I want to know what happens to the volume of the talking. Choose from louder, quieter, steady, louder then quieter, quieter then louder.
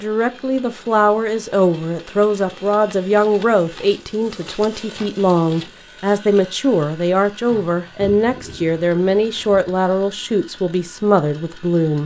steady.